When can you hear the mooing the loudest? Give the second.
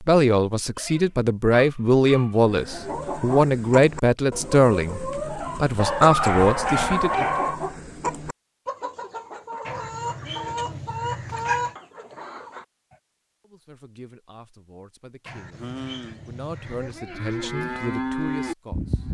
18 s.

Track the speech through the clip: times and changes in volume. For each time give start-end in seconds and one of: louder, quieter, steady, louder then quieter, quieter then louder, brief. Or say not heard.
0.0-7.2 steady
13.4-19.0 louder.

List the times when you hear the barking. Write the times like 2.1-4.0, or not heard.
0.8-2.5, 5.8-7.6, 9.7-11.8, 15.2-17.0.